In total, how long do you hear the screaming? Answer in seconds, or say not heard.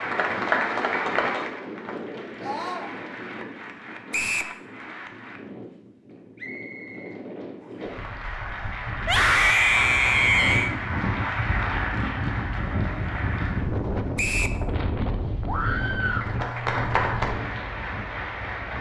3 s.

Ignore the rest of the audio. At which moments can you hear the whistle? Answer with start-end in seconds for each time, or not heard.
4.1-4.5, 6.3-7.8, 14.2-14.6.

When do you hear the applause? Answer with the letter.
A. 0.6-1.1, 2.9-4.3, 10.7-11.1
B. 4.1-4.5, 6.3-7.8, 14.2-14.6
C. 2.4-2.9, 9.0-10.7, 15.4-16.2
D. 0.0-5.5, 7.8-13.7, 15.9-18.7
D.